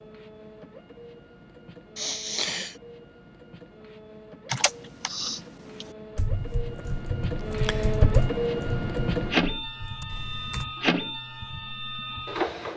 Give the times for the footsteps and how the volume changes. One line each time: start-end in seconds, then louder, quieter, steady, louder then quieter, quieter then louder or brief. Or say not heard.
not heard.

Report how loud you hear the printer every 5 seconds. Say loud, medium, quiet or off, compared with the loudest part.
quiet, loud, loud.